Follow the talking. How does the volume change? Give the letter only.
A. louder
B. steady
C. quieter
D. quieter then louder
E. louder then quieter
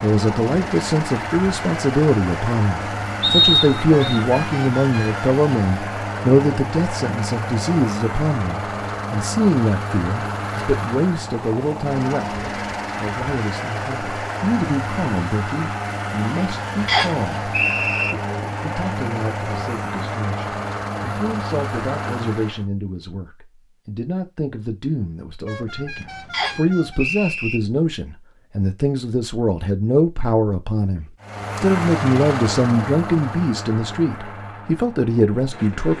D.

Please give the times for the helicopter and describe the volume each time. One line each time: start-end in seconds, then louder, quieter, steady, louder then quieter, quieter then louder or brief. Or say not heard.
0.0-22.6 steady
31.2-35.9 quieter.